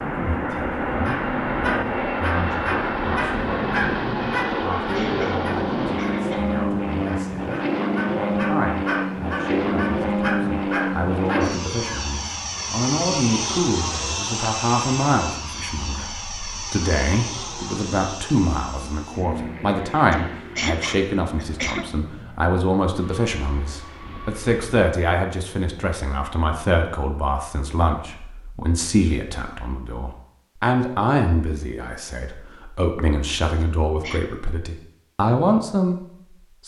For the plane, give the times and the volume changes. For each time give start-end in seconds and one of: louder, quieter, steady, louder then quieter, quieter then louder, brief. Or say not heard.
0.0-24.6 quieter.